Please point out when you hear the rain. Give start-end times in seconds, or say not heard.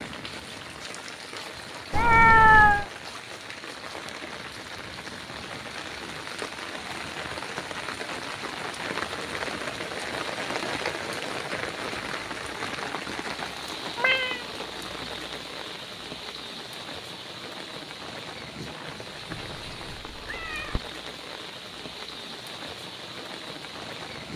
0.0-24.3.